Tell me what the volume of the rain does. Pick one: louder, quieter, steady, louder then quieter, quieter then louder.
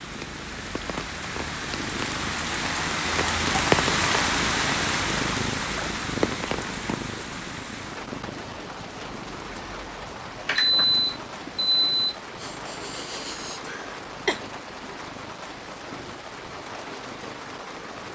quieter.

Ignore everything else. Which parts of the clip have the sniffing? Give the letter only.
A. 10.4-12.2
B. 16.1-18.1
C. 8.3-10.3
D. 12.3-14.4
D.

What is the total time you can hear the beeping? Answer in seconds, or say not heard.
2 s.